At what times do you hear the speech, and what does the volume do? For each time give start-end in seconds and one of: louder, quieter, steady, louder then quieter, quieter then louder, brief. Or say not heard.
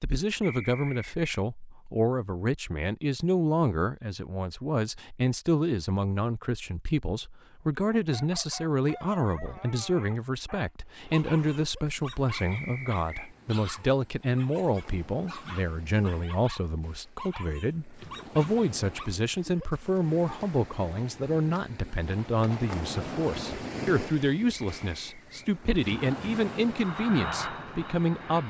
0.0-28.4 steady.